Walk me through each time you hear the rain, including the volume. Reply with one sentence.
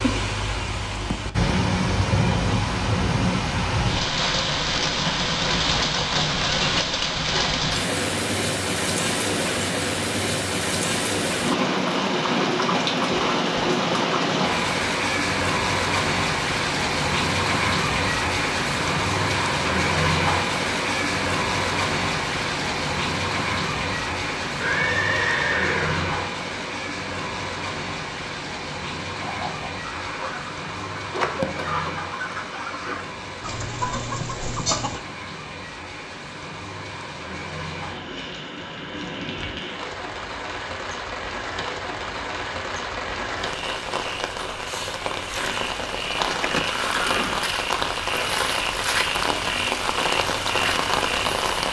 You can hear the rain from 0.0 to 51.6 s, getting quieter then louder.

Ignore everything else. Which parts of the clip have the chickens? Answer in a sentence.
The chickens can be heard from 29.2 to 35.0 s.